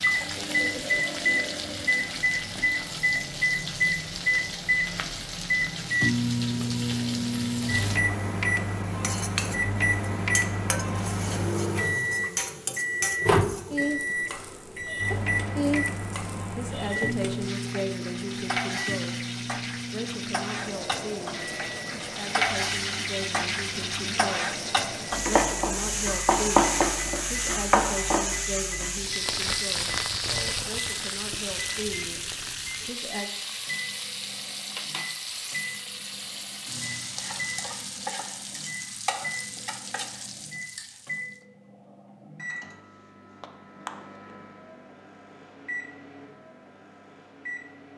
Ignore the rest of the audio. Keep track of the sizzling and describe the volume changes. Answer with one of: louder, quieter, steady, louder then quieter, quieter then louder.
louder then quieter.